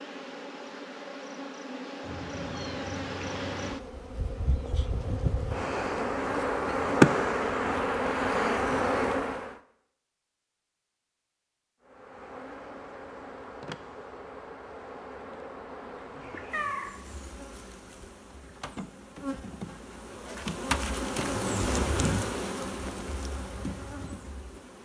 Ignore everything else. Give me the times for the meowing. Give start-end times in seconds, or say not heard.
2.0-3.8, 16.2-16.9.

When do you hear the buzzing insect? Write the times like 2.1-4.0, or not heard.
0.0-9.6, 11.8-24.8.